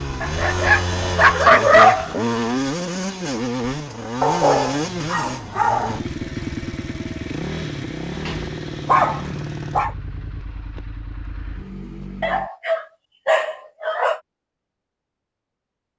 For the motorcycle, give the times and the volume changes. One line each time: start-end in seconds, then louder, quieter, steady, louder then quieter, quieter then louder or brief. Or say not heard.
0.0-12.5 quieter.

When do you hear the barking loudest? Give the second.
2 s.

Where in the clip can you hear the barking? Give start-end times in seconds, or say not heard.
0.2-2.1, 4.2-6.0, 8.2-9.9, 12.2-14.2.